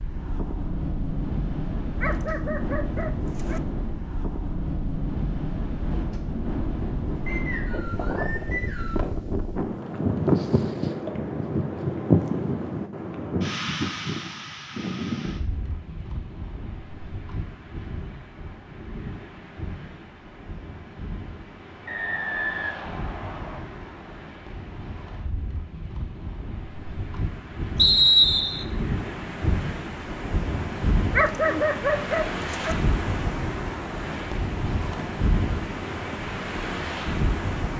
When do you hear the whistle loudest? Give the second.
28 s.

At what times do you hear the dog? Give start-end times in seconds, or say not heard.
2.0-3.6, 31.1-32.8.